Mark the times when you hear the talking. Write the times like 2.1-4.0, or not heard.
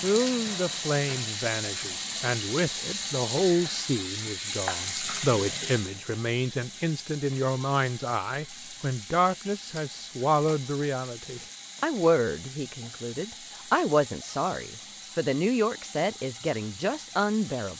0.0-17.7.